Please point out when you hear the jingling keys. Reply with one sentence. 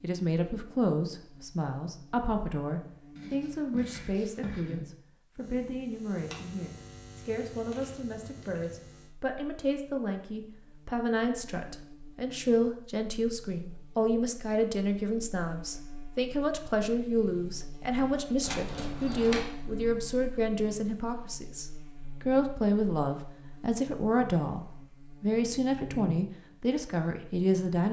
The jingling keys can be heard from 6.2 to 8.9 s and from 18.4 to 19.4 s.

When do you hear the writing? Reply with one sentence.
You can hear the writing from 3.1 to 4.8 s.